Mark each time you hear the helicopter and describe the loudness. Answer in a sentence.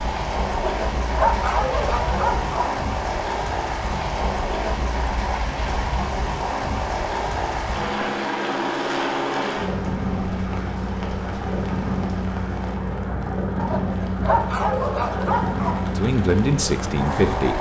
The helicopter can be heard from 0.0 to 17.5 s, at a steady volume.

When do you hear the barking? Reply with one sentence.
You can hear the barking from 0.5 to 2.8 s and from 13.6 to 15.9 s.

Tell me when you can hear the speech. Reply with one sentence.
The speech can be heard from 15.9 to 17.5 s.